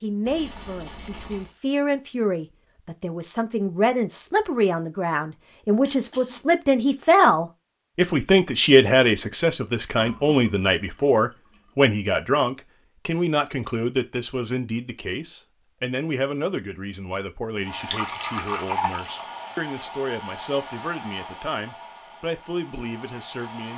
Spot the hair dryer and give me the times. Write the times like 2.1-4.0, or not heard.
17.6-23.7.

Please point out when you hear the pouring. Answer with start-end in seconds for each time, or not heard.
0.2-1.6, 9.9-11.7, 17.7-19.1.